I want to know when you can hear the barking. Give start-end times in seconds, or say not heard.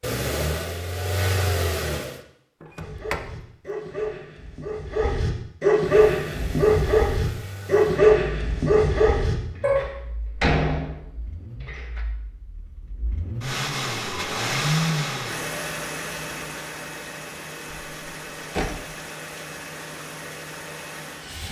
2.8-9.8.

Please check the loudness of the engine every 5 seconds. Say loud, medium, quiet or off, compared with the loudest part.
loud, quiet, loud, medium, medium.